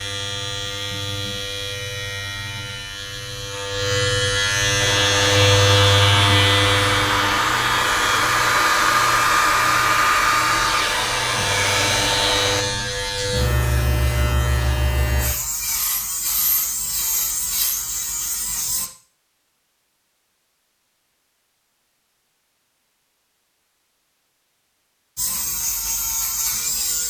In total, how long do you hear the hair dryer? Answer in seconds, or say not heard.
8 s.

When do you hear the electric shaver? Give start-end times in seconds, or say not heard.
0.0-18.9, 25.1-27.0.